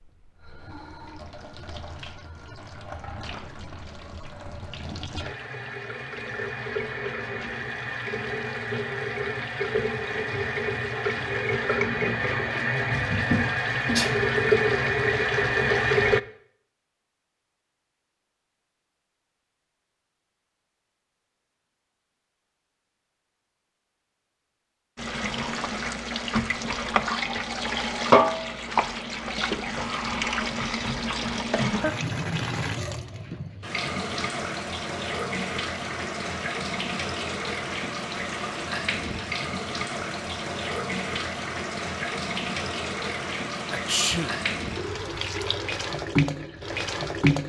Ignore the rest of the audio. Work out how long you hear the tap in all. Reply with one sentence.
The tap can be heard for 39 seconds in total.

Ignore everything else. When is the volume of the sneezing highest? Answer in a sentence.
The volume of the sneezing peaks at 44 seconds.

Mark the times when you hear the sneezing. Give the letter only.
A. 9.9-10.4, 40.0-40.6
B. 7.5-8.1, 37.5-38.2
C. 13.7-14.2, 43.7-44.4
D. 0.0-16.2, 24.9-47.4
C.